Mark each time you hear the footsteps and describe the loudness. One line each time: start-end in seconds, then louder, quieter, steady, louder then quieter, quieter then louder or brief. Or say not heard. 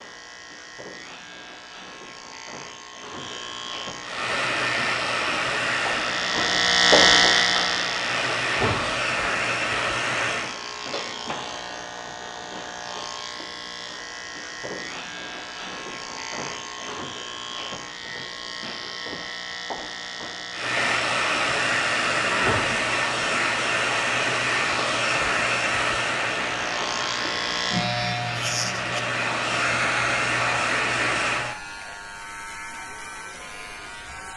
not heard.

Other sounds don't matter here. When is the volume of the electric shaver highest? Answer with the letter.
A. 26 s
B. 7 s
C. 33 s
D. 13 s
B.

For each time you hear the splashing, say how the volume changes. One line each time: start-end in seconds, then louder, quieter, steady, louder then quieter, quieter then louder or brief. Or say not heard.
not heard.